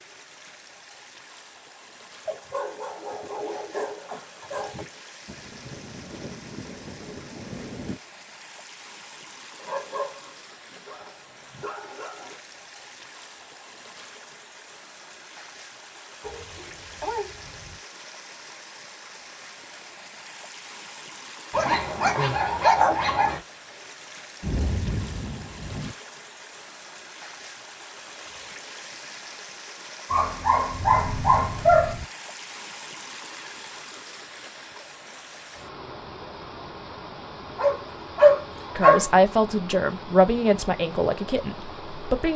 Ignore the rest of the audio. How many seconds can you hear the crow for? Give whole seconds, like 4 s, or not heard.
not heard.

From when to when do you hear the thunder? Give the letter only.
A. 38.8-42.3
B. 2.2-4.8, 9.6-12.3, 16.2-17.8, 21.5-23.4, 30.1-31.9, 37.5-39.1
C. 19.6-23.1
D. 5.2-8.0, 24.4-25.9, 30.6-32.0
D.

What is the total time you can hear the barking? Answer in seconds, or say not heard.
12 s.